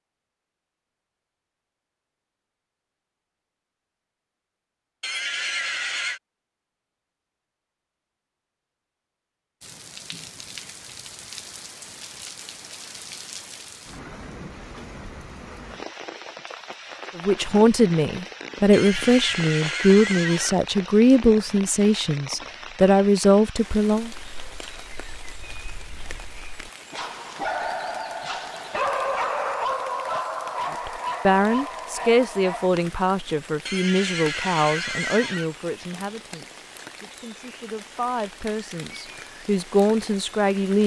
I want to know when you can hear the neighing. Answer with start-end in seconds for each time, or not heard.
5.0-6.2, 18.7-20.6, 33.6-35.5.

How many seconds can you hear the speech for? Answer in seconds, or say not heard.
17 s.